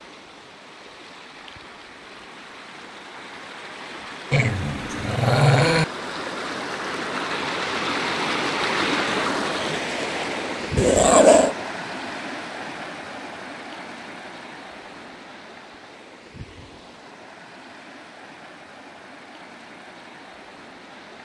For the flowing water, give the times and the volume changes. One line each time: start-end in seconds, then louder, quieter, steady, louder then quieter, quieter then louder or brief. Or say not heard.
0.0-21.2 louder then quieter.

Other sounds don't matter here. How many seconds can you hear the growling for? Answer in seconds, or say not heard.
2 s.